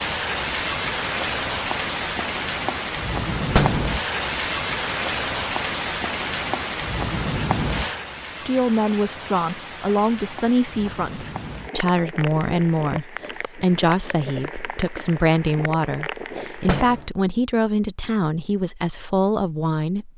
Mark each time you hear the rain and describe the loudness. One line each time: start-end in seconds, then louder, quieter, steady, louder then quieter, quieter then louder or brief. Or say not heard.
0.0-16.9 quieter.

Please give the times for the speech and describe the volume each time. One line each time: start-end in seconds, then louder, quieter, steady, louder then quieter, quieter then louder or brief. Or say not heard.
8.4-20.1 steady.